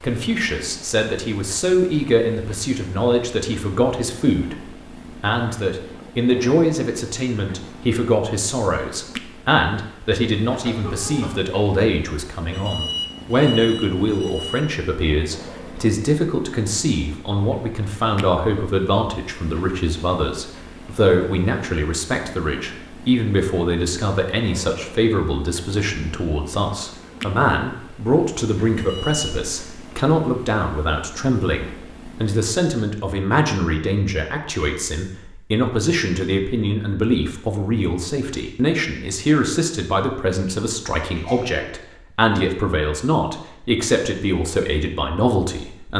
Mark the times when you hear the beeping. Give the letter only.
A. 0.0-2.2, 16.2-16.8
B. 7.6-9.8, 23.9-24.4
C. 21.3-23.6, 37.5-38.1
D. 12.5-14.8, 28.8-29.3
D.